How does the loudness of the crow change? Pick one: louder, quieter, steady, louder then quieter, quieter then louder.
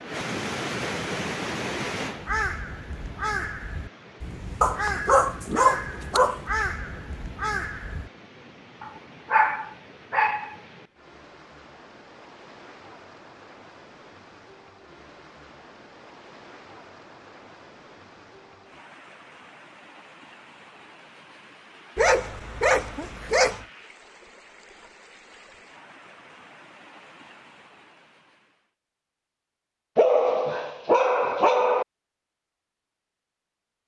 quieter then louder.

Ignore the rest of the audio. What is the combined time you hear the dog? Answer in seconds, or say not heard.
7 s.